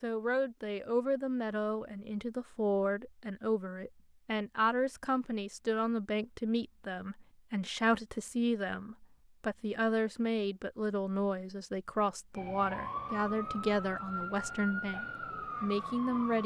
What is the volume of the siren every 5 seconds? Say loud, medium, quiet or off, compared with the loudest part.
off, off, loud, loud.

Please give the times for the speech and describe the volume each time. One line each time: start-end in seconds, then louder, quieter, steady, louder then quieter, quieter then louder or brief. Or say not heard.
0.0-16.4 steady.